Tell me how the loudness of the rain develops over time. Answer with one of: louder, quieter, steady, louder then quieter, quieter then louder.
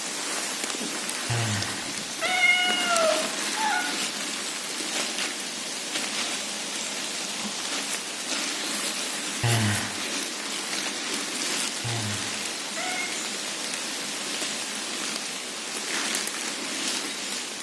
steady.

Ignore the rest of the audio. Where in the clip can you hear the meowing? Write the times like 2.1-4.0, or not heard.
1.2-3.9, 9.4-9.9, 11.8-13.1.